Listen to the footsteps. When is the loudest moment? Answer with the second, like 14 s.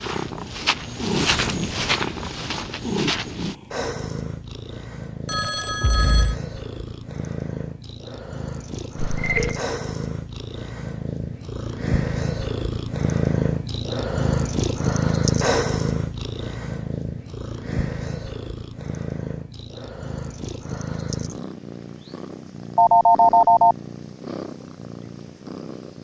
1 s.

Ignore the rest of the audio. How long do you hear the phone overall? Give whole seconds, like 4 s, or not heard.
3 s.